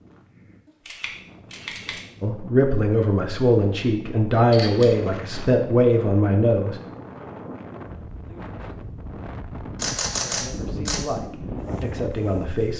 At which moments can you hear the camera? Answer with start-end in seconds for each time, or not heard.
0.7-2.0, 4.3-4.8, 9.8-11.0.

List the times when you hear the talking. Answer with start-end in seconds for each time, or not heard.
2.2-6.8, 10.1-12.7.